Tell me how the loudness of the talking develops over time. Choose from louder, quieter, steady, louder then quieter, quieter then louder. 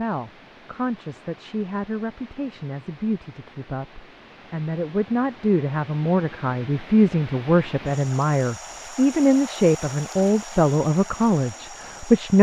louder.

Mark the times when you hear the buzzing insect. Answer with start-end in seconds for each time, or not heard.
not heard.